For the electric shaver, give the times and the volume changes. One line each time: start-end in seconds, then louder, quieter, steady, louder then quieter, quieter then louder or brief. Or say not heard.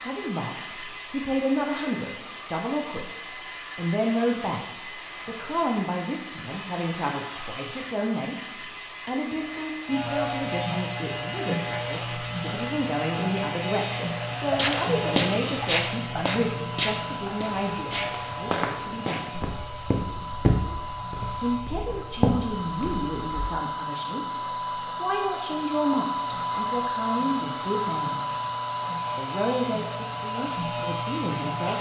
9.8-31.7 quieter then louder.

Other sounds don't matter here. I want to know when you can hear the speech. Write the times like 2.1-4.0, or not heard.
0.0-4.7, 5.2-8.3, 9.1-19.4, 21.4-28.3, 29.1-31.7.